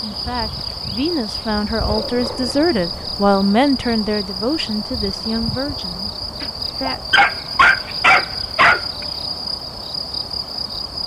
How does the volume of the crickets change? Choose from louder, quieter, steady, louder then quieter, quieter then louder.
steady.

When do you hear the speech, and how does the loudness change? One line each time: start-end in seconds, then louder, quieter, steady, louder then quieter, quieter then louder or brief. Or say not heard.
0.0-7.2 louder then quieter.